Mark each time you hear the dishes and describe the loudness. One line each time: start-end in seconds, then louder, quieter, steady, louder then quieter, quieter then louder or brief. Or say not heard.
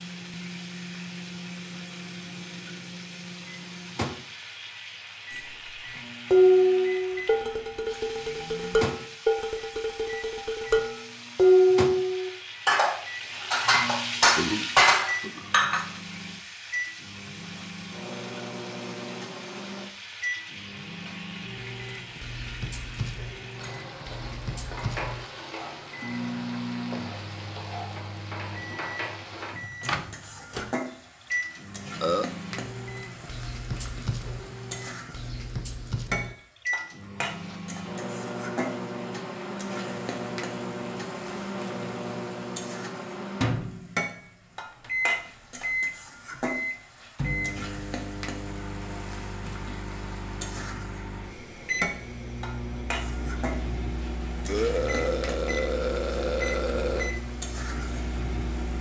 5.5-15.8 quieter then louder.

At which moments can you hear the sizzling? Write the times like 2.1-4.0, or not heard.
0.0-58.7.